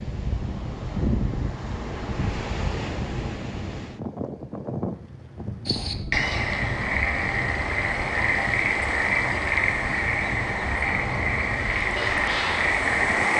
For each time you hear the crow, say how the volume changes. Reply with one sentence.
You can't hear the crow here.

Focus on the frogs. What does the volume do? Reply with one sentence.
The loudness of the frogs stays about the same.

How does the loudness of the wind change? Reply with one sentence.
The loudness of the wind goes down.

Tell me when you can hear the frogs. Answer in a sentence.
The frogs can be heard from 5.7 to 13.3 s.